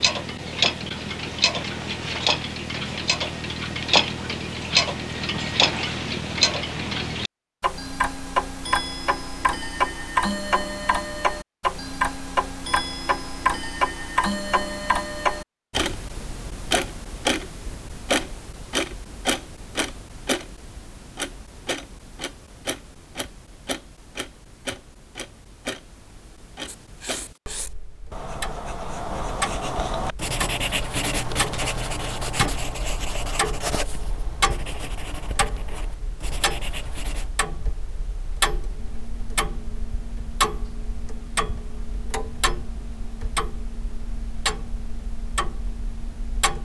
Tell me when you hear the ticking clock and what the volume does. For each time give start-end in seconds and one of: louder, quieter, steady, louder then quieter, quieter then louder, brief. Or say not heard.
0.0-46.5 quieter.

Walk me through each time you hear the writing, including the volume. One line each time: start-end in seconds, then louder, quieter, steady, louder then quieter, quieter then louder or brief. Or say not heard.
26.6-37.3 louder then quieter.